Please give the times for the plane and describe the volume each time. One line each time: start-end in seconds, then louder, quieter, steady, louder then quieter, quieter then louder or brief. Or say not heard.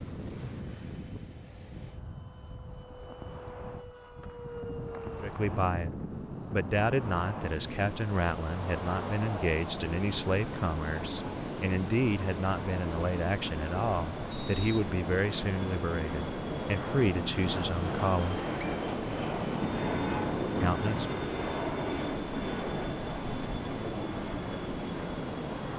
0.0-25.7 louder.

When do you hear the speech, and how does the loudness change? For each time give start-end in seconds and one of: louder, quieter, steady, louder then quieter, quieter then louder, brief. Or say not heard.
5.2-18.4 steady
20.6-21.1 brief.